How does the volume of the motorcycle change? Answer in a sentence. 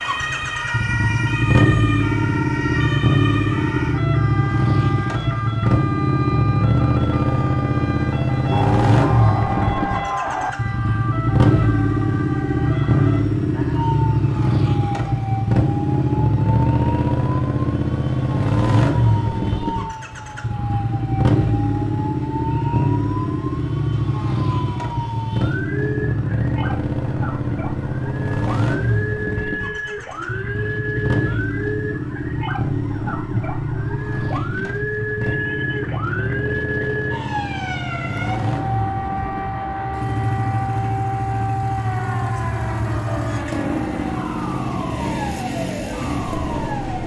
The volume of the motorcycle goes down.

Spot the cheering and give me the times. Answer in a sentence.
You can hear the cheering from 8.5 to 10.5 s.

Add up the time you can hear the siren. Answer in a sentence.
The siren can be heard for 47 seconds in total.